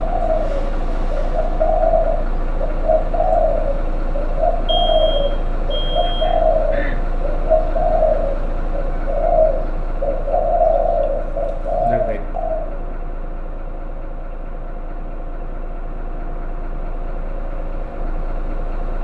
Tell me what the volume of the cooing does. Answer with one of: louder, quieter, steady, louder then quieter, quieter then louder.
steady.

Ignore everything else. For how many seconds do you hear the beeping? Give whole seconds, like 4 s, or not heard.
2 s.